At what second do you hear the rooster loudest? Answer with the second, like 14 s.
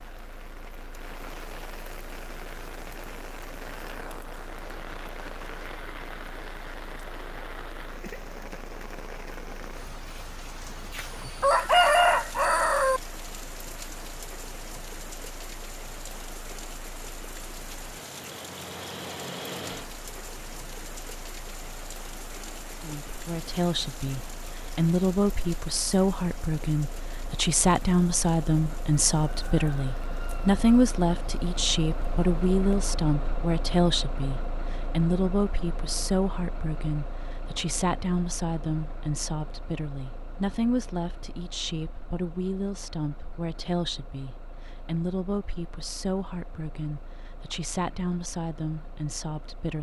12 s.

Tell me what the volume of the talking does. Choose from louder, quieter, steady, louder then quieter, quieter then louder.
quieter.